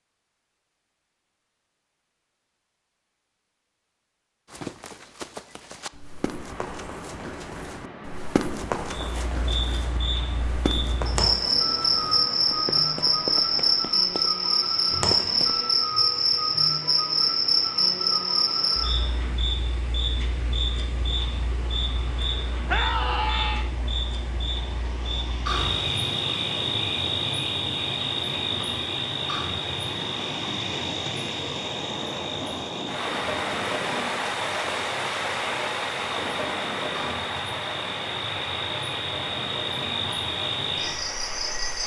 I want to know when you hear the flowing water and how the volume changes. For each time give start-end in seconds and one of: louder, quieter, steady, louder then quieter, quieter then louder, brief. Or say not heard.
6.2-41.8 louder.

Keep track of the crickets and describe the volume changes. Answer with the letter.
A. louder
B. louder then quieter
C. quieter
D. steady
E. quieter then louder
C.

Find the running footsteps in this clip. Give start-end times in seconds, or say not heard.
4.5-15.7.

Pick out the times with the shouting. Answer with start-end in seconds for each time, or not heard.
22.6-23.7.